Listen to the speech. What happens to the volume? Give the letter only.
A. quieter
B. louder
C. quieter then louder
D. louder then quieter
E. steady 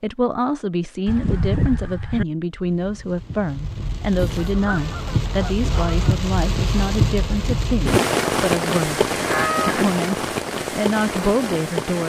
E.